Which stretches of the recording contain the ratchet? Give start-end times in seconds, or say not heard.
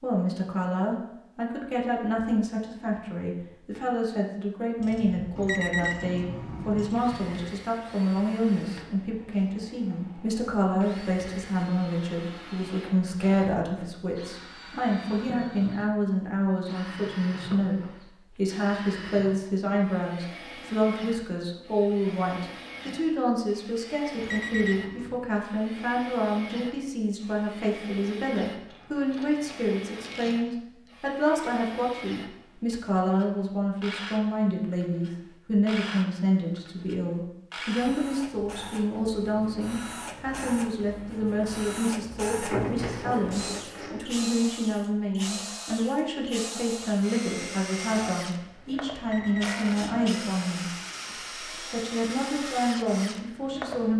4.8-7.3, 28.6-30.4, 42.4-44.0.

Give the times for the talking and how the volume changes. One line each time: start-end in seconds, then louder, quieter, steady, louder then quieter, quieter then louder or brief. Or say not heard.
0.0-53.9 steady.